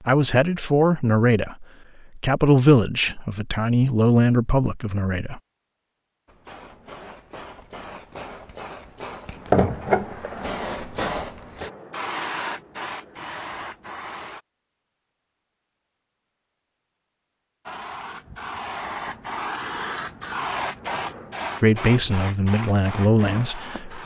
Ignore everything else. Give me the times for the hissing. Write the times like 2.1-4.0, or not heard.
6.2-14.4, 17.6-24.0.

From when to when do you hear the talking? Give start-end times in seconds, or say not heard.
0.1-5.4, 21.6-24.0.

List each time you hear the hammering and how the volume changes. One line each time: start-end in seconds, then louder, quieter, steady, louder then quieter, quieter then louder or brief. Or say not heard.
not heard.